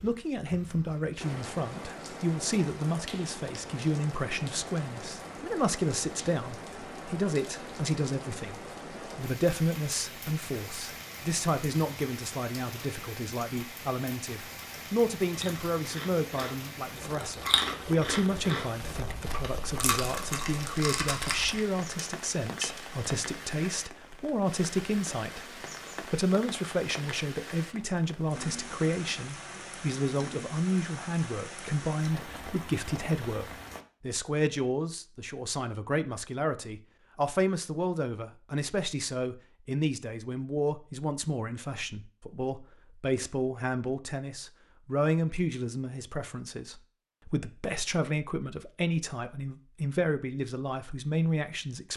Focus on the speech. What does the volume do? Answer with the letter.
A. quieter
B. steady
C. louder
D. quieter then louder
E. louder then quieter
B.